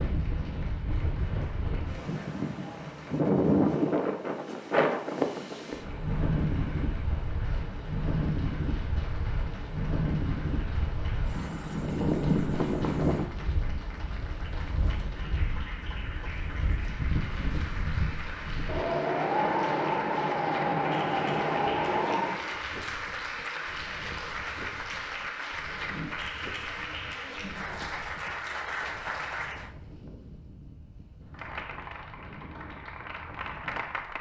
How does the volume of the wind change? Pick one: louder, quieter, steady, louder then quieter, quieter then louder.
quieter.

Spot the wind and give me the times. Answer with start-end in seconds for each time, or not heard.
0.0-34.1.